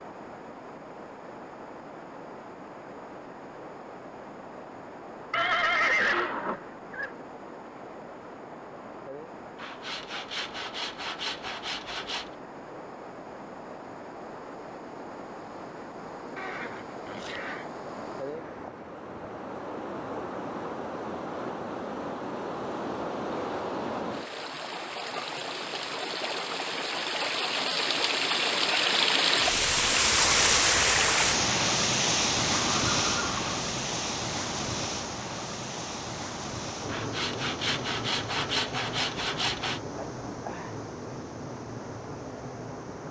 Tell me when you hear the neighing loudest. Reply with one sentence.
The volume of the neighing peaks at 6 seconds.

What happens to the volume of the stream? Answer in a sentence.
The loudness of the stream goes up, then down.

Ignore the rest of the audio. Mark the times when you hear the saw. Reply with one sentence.
You can hear the saw from 9.6 to 12.3 s and from 36.9 to 39.8 s.